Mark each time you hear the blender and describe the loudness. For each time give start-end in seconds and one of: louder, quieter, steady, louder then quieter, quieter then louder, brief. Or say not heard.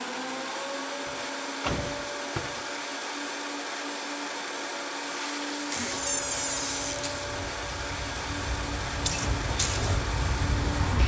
0.0-11.0 steady.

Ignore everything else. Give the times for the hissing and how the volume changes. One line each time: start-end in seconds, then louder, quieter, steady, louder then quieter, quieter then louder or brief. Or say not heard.
5.1-11.0 louder.